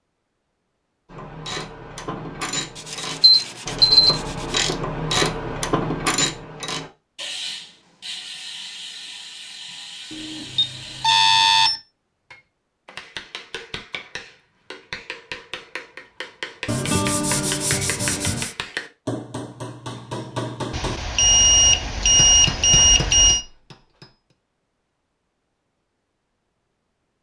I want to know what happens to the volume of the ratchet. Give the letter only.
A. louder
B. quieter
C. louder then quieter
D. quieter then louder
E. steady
C.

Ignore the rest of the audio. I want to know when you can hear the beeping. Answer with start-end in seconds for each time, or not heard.
3.2-4.2, 10.1-11.8, 20.7-23.4.